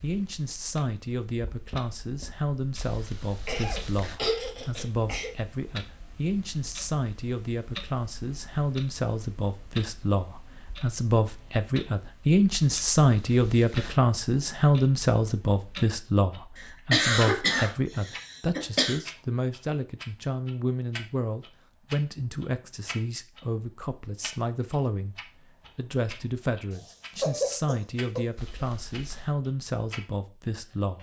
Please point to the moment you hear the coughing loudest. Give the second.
17 s.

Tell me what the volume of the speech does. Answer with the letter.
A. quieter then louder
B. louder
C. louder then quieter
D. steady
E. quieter
C.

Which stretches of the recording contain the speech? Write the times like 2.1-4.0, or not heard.
0.0-25.1, 25.8-30.9.